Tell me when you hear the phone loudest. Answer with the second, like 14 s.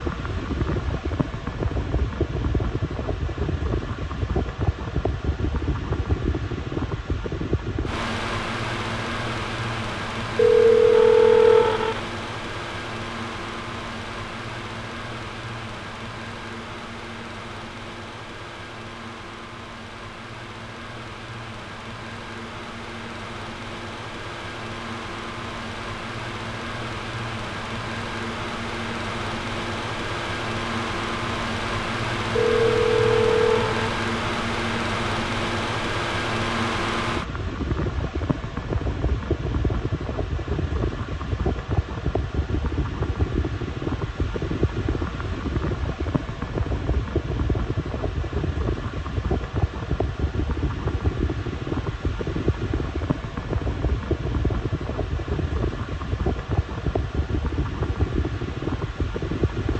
11 s.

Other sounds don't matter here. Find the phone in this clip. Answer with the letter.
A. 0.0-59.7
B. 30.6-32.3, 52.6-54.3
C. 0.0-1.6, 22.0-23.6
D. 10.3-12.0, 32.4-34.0
D.